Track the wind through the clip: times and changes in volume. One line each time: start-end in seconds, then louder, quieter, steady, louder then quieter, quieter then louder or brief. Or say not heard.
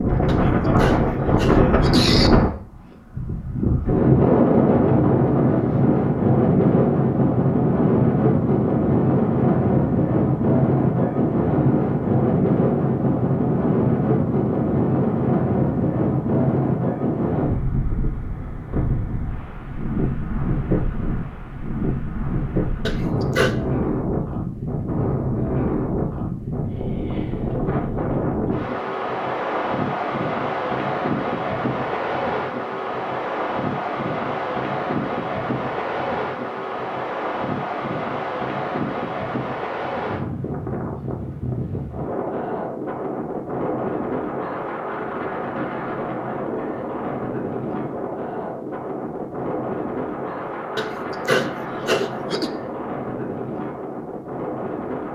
0.0-55.1 quieter.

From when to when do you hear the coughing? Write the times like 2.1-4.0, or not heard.
0.2-2.3, 22.9-23.6, 50.8-52.5.